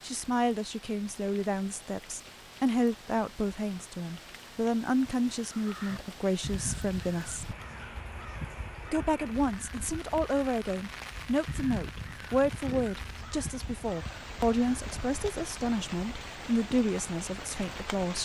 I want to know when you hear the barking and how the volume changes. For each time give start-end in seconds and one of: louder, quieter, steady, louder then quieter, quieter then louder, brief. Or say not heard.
not heard.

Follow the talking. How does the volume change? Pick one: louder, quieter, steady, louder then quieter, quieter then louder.
steady.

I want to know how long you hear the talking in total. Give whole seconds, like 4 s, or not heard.
17 s.